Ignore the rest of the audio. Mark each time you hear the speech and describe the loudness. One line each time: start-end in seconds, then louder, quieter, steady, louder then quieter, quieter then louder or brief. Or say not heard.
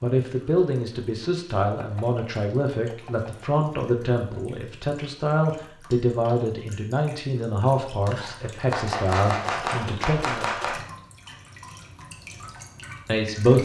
0.0-10.6 steady
13.1-13.5 brief.